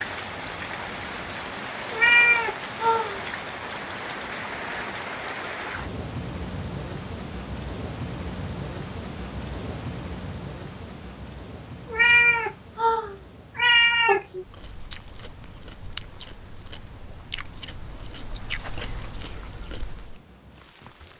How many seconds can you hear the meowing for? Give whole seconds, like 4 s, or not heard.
4 s.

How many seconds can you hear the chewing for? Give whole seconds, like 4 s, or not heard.
6 s.